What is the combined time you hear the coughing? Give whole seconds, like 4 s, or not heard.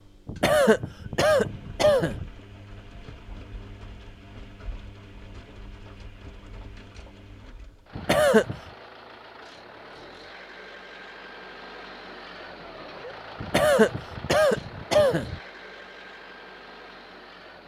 5 s.